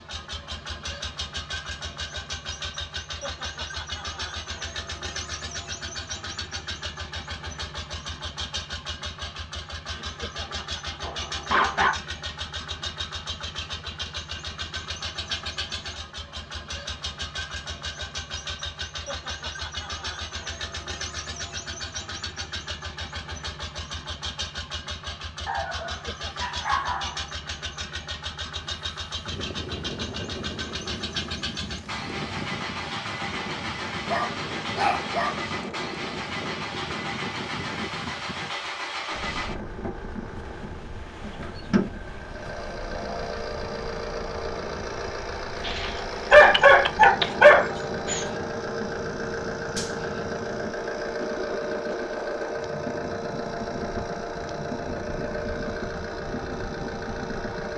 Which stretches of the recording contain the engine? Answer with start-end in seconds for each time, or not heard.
0.0-57.7.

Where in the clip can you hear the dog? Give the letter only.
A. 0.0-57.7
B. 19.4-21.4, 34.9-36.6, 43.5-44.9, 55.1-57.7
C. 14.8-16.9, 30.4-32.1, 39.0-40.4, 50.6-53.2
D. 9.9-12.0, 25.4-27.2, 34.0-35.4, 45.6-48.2
D.